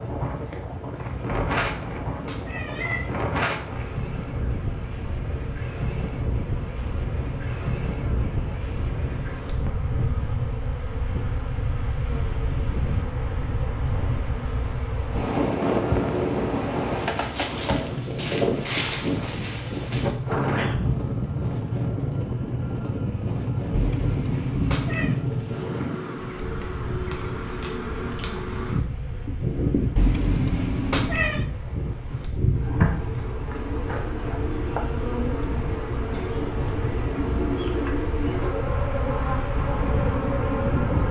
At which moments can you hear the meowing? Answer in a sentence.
You can hear the meowing from 1.3 to 3.1 s, from 23.7 to 25.1 s and from 29.9 to 31.4 s.